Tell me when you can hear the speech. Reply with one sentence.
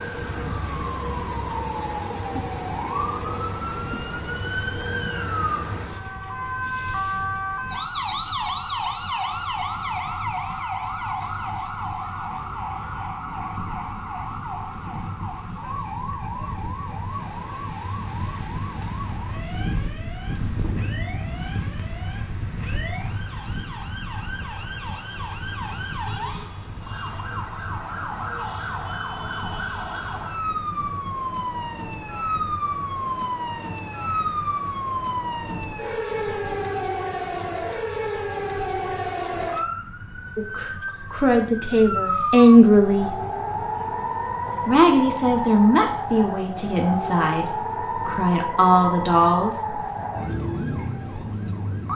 You can hear the speech from 40.4 to 43.1 s and from 44.6 to 49.8 s.